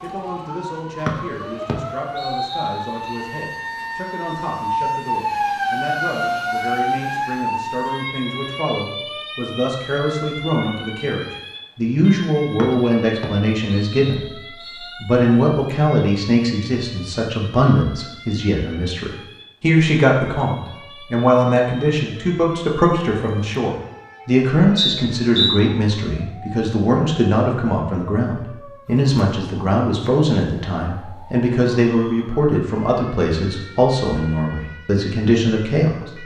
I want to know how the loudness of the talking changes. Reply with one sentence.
The loudness of the talking goes up.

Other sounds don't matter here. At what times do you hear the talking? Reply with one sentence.
The talking can be heard from 0.0 to 14.4 s and from 15.0 to 36.2 s.